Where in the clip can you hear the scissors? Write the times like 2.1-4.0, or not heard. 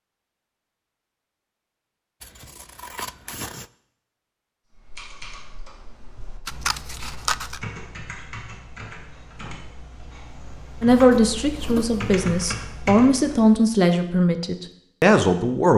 2.2-3.7, 6.5-7.6, 10.9-12.1.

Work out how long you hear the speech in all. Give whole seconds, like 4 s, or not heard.
5 s.